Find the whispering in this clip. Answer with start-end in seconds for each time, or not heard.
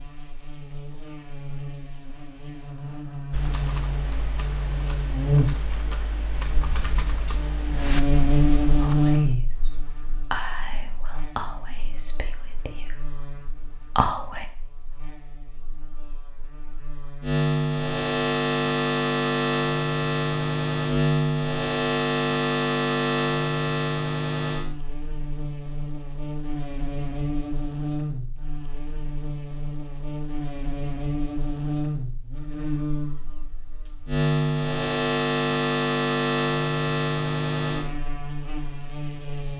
8.8-14.4.